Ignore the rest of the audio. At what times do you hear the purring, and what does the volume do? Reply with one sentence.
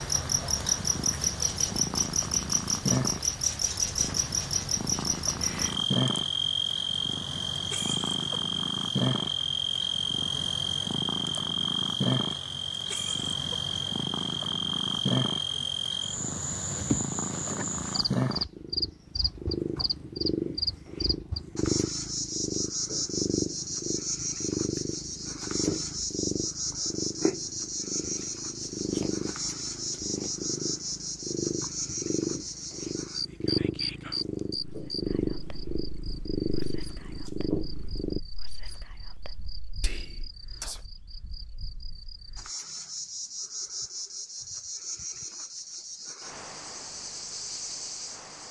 You can hear the purring from 0.0 to 38.2 s, at a steady volume.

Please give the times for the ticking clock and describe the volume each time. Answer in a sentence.
The ticking clock can't be heard in this clip.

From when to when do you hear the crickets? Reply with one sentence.
You can hear the crickets from 0.0 to 48.4 s.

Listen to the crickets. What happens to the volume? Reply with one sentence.
The loudness of the crickets goes down.